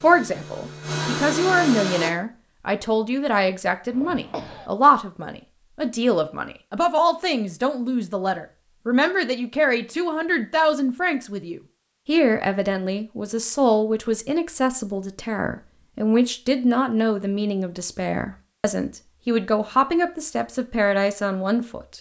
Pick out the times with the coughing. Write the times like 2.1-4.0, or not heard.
3.9-4.7.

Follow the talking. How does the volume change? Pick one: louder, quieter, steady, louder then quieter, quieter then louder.
steady.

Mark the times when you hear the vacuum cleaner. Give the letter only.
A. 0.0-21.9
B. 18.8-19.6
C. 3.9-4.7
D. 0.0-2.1
D.